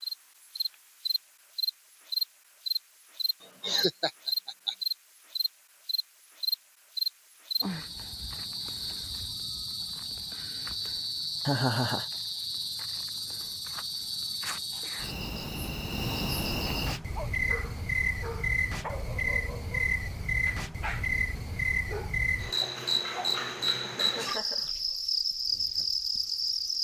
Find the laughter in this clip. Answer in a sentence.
The laughter can be heard from 3.4 to 4.8 s, from 11.4 to 12.1 s and from 23.9 to 24.8 s.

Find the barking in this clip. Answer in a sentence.
The barking can be heard from 16.9 to 23.8 s.